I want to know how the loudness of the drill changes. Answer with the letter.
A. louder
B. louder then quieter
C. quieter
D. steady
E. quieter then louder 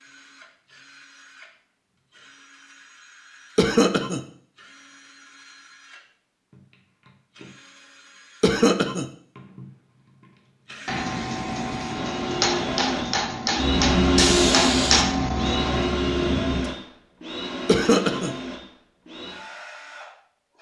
B.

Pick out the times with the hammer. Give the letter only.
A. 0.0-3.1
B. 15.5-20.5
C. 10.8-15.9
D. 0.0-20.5
C.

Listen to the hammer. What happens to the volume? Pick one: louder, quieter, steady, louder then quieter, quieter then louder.
louder.